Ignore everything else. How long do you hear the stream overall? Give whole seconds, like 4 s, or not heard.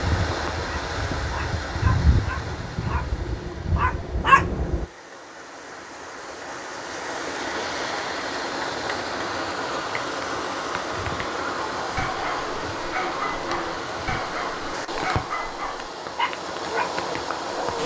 18 s.